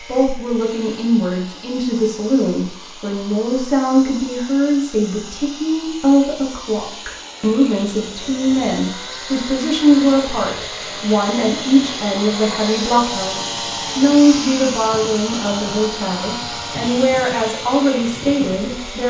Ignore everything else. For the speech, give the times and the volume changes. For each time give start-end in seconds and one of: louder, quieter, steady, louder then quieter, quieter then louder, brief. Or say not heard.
0.1-19.0 steady.